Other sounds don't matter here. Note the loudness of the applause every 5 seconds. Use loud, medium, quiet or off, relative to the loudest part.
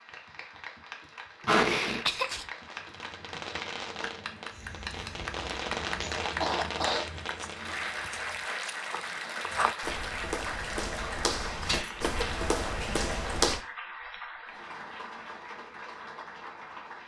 medium, loud, loud, medium.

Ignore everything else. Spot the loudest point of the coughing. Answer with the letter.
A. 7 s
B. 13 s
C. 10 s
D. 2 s
D.